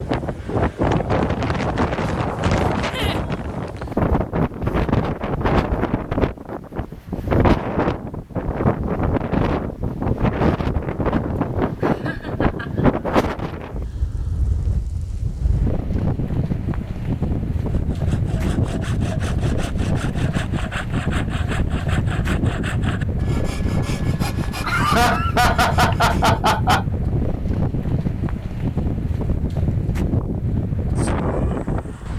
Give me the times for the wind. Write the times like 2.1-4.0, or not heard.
0.0-32.1.